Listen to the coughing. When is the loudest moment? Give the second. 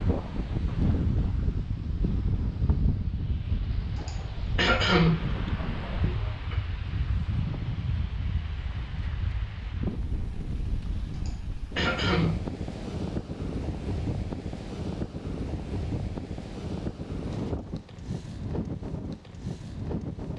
5 s.